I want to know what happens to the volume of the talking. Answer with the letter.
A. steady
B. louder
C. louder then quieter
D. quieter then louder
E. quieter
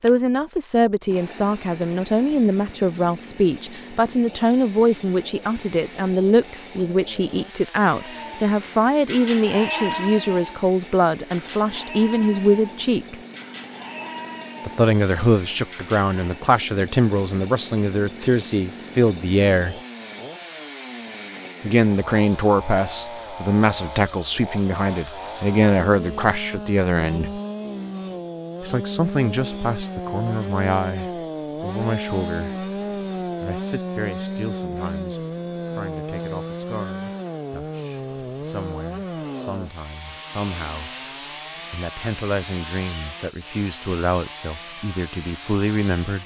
E.